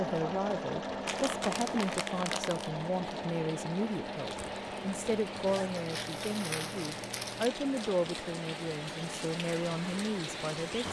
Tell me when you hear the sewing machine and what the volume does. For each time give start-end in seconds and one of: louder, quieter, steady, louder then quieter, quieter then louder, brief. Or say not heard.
0.0-10.6 quieter.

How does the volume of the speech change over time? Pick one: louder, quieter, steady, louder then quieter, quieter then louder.
steady.